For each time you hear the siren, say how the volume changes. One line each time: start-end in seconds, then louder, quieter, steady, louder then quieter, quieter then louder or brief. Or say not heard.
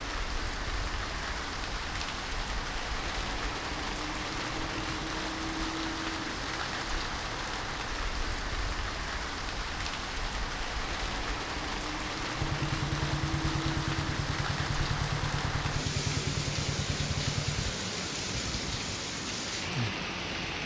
not heard.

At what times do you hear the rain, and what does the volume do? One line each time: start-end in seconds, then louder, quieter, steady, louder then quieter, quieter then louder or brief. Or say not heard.
0.0-20.6 steady.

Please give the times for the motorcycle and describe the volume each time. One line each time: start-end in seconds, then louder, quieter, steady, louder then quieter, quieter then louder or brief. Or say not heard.
12.3-17.8 steady.